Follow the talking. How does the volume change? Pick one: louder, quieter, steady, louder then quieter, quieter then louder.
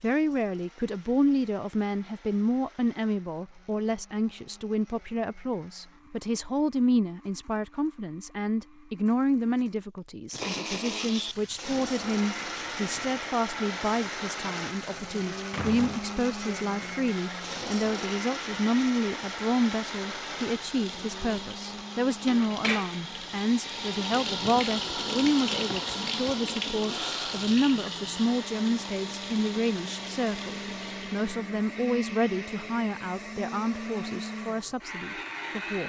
steady.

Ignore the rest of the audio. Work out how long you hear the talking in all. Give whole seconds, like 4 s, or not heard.
36 s.